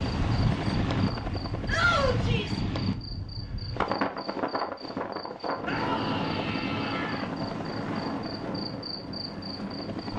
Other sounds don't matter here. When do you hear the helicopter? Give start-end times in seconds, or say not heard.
0.0-2.3, 5.7-10.1.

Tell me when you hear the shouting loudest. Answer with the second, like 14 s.
2 s.